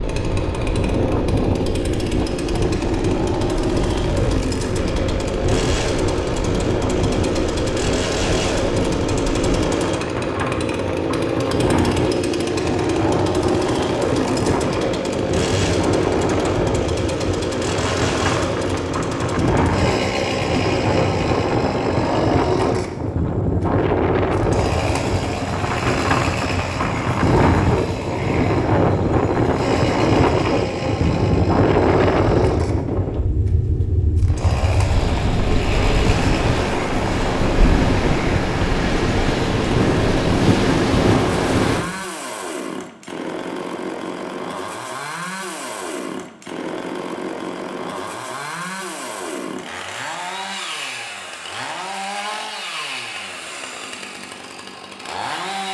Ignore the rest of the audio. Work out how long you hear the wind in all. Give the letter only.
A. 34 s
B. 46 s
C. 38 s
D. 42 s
D.